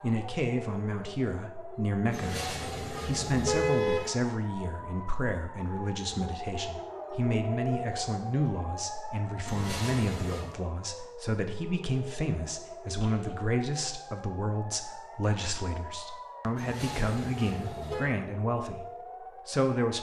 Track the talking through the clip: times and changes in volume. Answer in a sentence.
The talking can be heard from 0.0 to 19.9 s, at a steady volume.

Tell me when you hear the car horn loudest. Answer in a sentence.
The volume of the car horn peaks at 4 seconds.